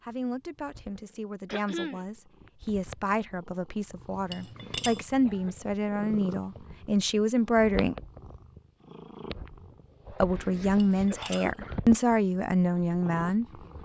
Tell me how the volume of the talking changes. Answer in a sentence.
The loudness of the talking goes up.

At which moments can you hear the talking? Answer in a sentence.
You can hear the talking from 0.0 to 8.0 s and from 10.2 to 13.8 s.